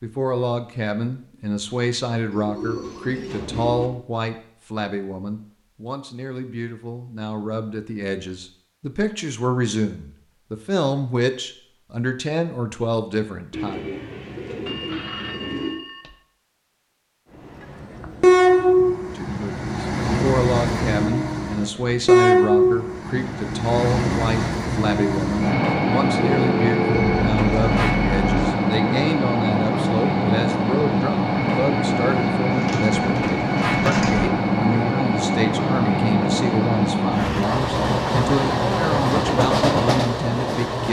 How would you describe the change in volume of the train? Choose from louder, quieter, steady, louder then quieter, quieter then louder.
steady.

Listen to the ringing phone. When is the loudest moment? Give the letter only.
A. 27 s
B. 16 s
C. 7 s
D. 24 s
A.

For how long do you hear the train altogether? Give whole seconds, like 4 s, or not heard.
23 s.